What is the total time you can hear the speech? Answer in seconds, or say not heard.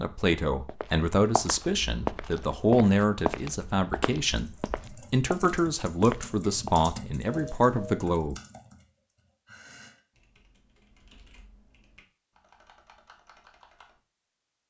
8 s.